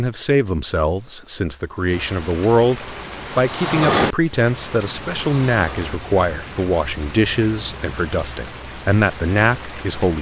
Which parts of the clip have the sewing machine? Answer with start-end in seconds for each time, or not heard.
2.8-6.0.